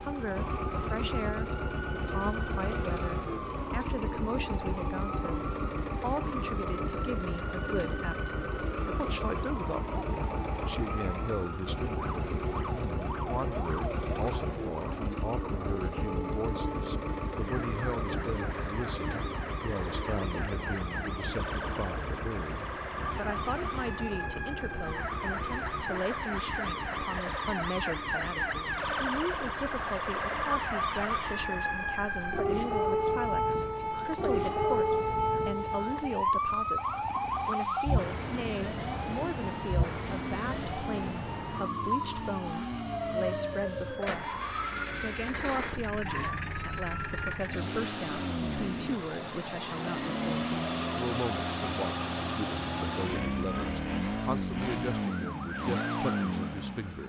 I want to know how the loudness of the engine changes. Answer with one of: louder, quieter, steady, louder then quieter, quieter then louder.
quieter then louder.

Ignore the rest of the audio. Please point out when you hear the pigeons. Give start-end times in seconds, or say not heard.
not heard.